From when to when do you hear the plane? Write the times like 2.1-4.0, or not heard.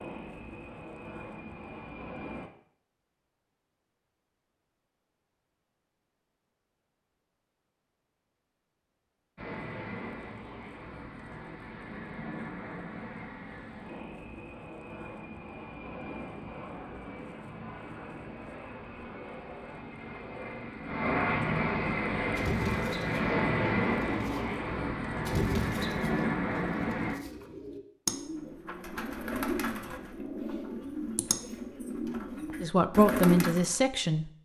0.0-2.5, 9.3-27.2.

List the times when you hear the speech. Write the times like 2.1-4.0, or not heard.
32.6-34.4.